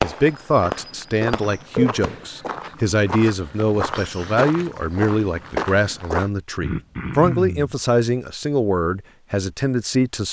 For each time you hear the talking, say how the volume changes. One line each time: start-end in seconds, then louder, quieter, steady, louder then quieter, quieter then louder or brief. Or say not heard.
0.0-10.2 steady.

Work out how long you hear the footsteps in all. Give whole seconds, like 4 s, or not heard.
6 s.